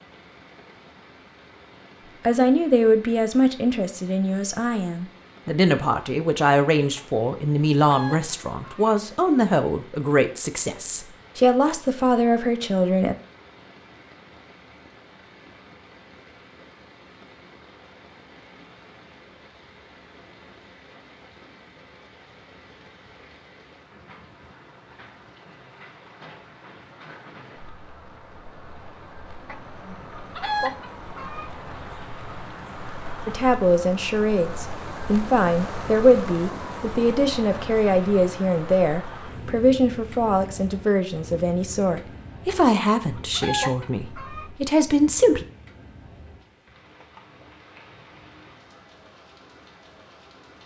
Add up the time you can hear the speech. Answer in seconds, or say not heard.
23 s.